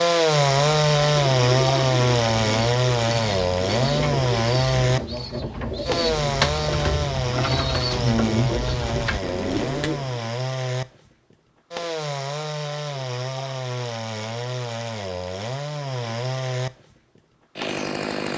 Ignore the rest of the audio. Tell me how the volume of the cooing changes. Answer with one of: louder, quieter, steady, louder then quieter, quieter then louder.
louder.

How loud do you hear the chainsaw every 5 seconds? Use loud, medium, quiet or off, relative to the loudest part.
loud, medium, medium, medium.